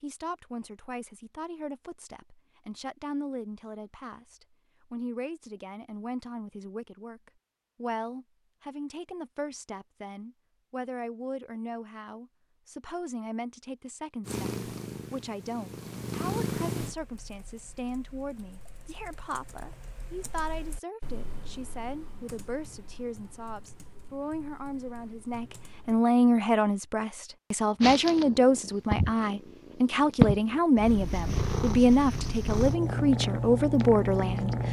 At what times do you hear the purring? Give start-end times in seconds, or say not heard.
14.2-16.9, 27.8-34.6.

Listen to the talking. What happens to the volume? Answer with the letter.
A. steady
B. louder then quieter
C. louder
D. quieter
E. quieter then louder
C.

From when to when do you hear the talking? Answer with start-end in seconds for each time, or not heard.
0.0-34.6.